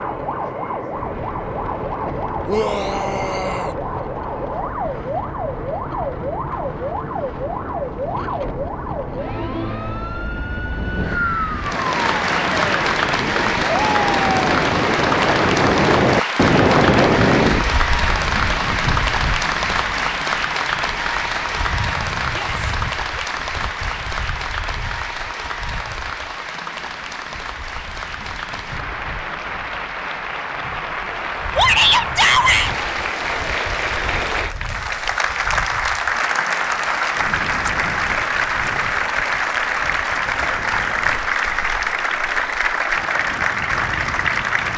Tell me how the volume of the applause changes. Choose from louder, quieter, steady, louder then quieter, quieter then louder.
quieter then louder.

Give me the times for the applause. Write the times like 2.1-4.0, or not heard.
11.6-44.7.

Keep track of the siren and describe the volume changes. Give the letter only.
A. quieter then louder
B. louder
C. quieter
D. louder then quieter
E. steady
E.